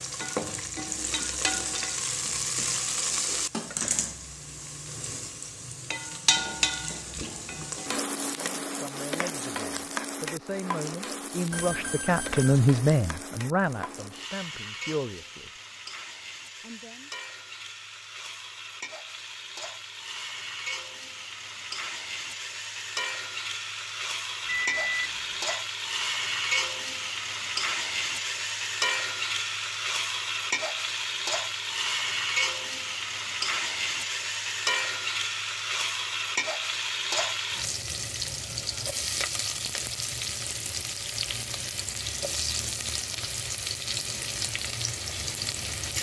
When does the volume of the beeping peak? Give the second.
25 s.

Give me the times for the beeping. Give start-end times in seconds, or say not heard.
11.5-12.6, 24.4-25.6.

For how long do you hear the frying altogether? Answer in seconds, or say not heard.
46 s.